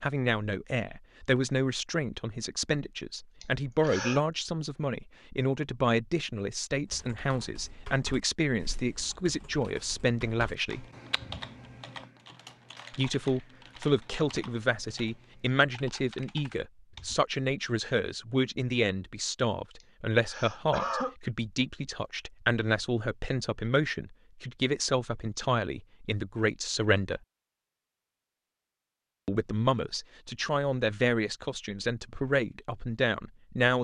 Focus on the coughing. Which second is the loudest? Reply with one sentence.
The volume of the coughing peaks at 21 seconds.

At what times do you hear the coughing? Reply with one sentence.
The coughing can be heard from 3.4 to 4.2 s and from 19.8 to 21.1 s.